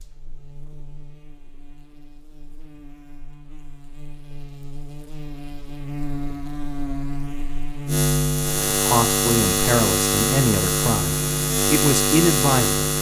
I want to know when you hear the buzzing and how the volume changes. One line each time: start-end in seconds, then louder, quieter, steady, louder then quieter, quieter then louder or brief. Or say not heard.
0.0-12.9 louder.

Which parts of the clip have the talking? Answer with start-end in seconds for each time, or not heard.
8.7-12.8.